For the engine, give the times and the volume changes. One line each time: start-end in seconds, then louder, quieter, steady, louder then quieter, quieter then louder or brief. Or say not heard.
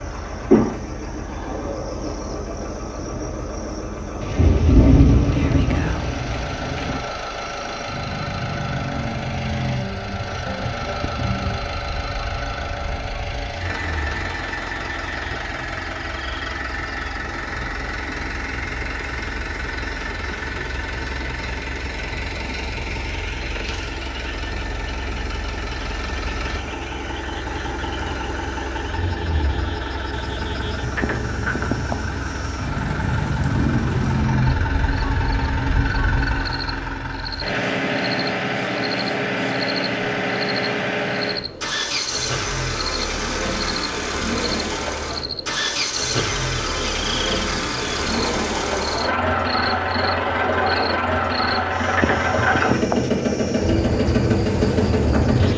0.0-55.5 louder.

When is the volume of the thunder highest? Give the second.
5 s.